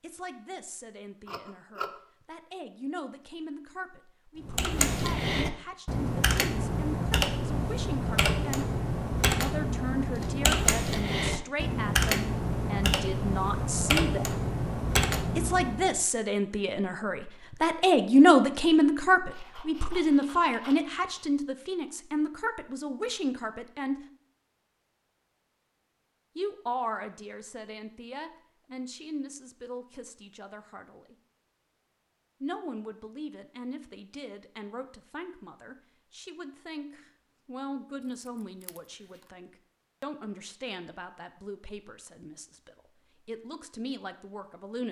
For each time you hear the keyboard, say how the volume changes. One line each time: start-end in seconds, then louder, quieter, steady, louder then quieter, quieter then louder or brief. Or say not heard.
4.4-16.0 steady.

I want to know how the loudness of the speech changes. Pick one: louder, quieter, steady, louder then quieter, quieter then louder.
louder then quieter.